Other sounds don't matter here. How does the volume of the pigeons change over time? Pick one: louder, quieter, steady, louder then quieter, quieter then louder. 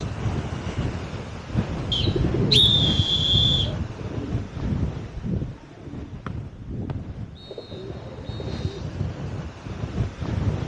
quieter.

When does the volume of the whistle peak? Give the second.
3 s.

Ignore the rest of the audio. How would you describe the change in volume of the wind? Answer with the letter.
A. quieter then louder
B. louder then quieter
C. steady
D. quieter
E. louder
A.